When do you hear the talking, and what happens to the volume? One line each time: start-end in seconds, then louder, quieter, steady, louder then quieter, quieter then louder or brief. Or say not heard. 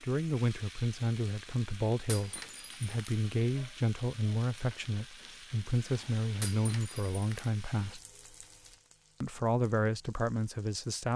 0.0-8.0 steady
9.2-11.1 brief.